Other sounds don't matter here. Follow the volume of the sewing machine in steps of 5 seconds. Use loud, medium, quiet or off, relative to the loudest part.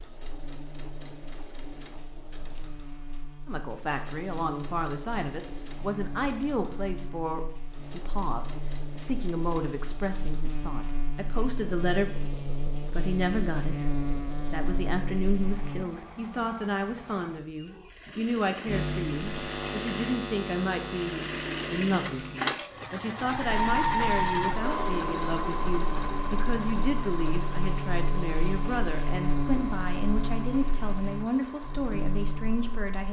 quiet, quiet, quiet, quiet, loud, medium, quiet.